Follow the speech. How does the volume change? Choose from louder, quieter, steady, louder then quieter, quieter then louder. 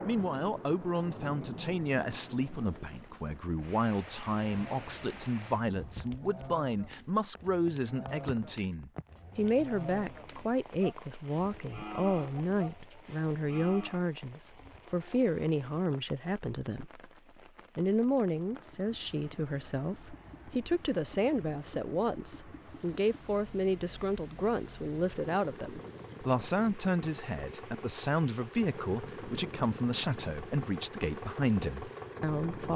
steady.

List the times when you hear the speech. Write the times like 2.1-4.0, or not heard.
0.0-17.0, 17.8-32.7.